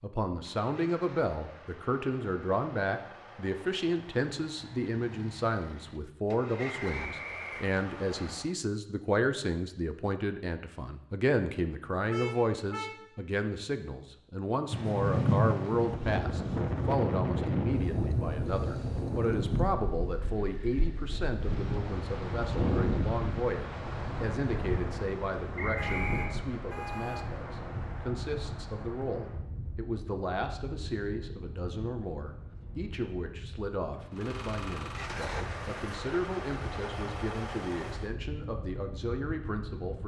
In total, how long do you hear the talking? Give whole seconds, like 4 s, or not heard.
40 s.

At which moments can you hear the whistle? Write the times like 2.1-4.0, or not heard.
6.5-7.7, 25.6-26.4.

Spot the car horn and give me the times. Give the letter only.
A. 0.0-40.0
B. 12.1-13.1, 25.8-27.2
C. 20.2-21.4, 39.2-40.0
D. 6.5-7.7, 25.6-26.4
B.